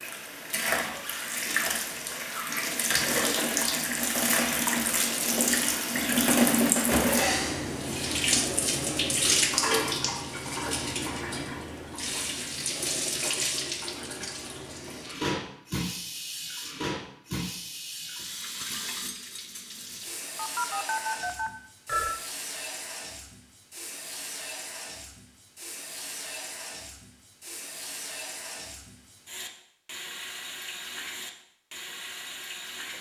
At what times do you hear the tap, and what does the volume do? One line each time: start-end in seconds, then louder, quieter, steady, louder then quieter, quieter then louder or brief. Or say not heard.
0.0-32.9 quieter.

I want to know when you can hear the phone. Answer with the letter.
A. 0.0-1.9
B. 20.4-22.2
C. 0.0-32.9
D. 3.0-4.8
B.